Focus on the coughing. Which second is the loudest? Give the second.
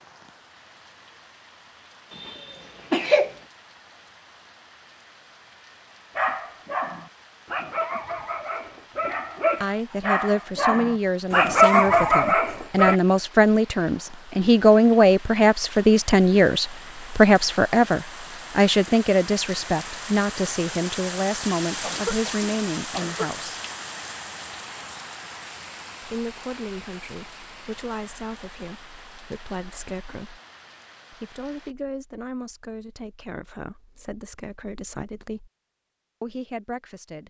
3 s.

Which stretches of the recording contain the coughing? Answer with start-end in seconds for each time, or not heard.
2.1-3.3, 21.8-23.3.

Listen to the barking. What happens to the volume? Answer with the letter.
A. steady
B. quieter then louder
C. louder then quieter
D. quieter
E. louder
E.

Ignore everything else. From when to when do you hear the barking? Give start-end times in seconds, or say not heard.
6.2-12.9.